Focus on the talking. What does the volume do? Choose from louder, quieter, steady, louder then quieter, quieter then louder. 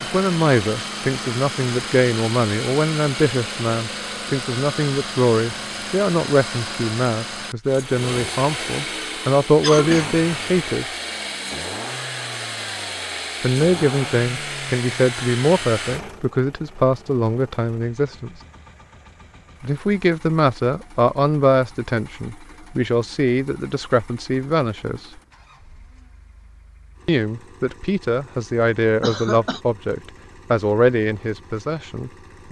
steady.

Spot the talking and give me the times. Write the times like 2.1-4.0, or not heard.
0.0-10.8, 13.4-18.4, 19.6-25.1, 27.1-32.4.